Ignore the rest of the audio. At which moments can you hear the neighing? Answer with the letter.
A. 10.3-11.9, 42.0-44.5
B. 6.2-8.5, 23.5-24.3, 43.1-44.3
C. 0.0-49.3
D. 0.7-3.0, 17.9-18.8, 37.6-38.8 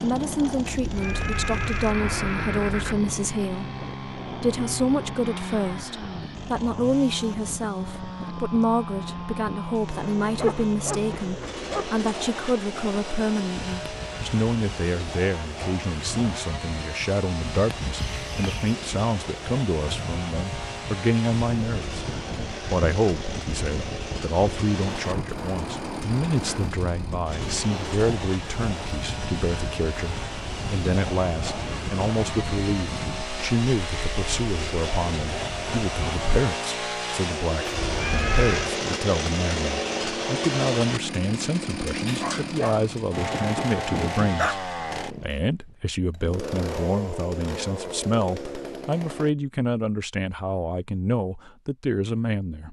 D.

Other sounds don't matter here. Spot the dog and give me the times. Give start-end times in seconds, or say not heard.
10.3-11.9, 42.0-44.5.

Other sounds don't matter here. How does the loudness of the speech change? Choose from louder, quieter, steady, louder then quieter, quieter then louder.
steady.